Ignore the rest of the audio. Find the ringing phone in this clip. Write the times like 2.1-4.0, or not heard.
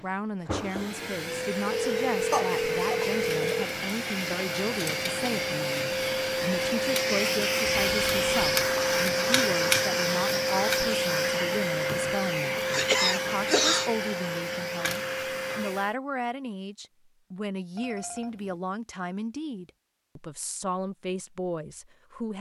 1.6-3.6, 7.7-8.7, 17.8-18.6.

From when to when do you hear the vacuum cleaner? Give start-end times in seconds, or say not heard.
0.0-15.9.